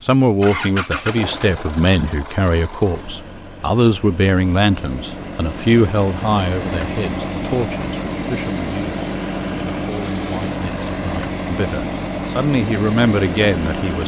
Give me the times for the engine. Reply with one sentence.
You can hear the engine from 0.0 to 14.0 s.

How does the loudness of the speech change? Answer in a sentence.
The volume of the speech goes down, then up.